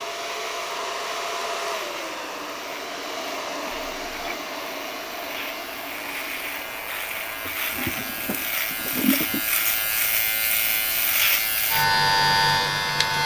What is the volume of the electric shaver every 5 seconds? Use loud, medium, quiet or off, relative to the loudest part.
quiet, medium, loud.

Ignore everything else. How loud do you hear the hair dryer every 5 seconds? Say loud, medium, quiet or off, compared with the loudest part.
loud, medium, quiet.